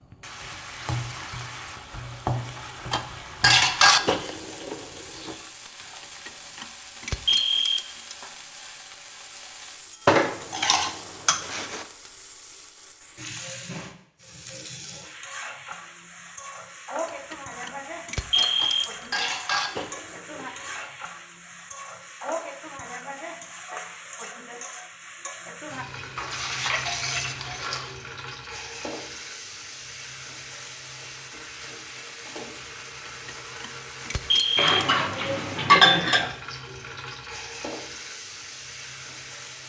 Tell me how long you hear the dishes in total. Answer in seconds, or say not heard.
10 s.